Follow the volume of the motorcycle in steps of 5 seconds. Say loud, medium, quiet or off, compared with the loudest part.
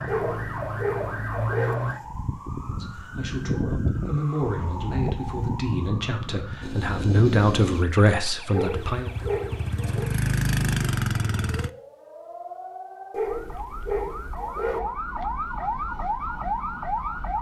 off, medium, loud, off.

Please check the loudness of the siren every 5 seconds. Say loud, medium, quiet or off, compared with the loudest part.
loud, medium, medium, loud.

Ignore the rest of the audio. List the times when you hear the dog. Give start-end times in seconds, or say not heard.
0.1-1.8, 8.5-10.1, 13.1-14.8.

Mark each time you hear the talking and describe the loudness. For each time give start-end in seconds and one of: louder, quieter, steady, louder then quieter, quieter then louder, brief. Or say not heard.
2.7-9.1 louder.